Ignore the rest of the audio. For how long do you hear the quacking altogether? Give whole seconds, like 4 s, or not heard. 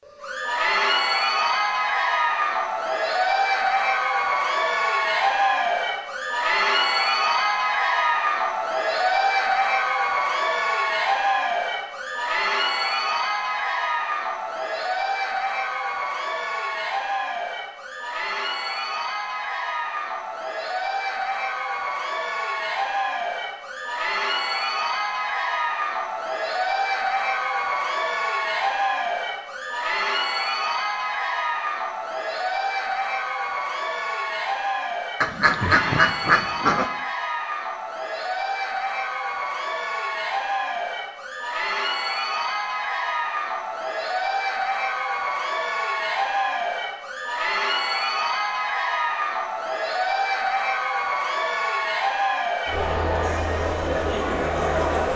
2 s.